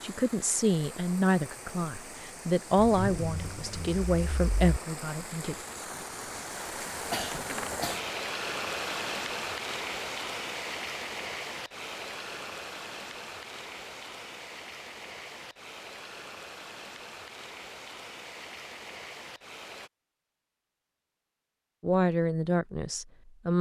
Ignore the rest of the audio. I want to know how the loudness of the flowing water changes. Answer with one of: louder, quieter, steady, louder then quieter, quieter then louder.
louder then quieter.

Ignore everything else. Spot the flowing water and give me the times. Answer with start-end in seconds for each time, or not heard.
0.0-19.9.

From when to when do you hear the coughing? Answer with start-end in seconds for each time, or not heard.
7.1-8.1.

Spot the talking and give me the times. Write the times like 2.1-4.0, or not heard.
0.0-5.5, 21.8-23.5.